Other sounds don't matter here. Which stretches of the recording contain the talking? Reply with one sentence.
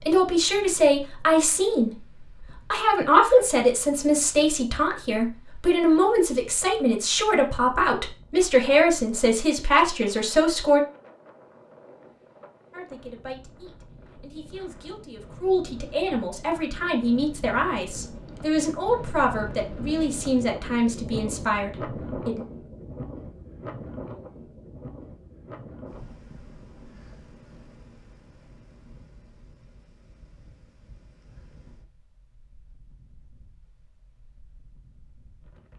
You can hear the talking from 0.0 to 10.8 s and from 12.7 to 22.4 s.